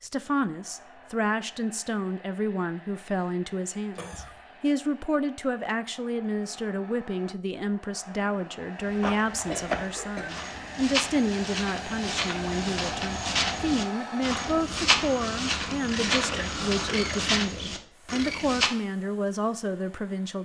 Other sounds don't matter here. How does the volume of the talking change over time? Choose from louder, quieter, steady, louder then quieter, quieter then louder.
steady.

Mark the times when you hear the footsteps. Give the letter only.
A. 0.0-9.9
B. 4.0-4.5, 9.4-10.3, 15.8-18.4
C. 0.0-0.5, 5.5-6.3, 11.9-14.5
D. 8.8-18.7
D.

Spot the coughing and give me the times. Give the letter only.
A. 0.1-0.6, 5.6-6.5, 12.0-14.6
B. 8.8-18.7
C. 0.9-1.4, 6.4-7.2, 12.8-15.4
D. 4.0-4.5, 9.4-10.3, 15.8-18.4
D.